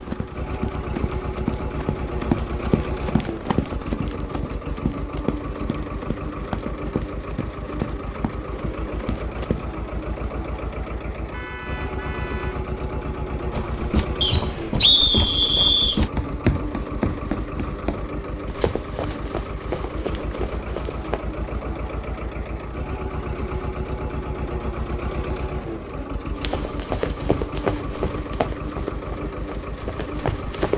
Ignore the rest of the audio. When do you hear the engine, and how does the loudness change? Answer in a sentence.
You can hear the engine from 0.0 to 30.7 s, at a steady volume.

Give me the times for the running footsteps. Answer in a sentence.
The running footsteps can be heard from 0.0 to 9.8 s, from 13.5 to 21.2 s and from 26.4 to 30.7 s.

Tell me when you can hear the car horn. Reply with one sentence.
The car horn can be heard from 11.3 to 12.7 s.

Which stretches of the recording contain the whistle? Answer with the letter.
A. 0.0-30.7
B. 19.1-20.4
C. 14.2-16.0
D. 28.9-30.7
C.